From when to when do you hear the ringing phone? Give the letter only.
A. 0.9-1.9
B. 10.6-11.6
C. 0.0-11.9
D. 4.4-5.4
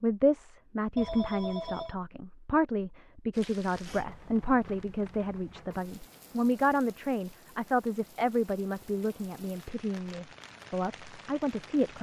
A.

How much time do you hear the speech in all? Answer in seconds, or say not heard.
12 s.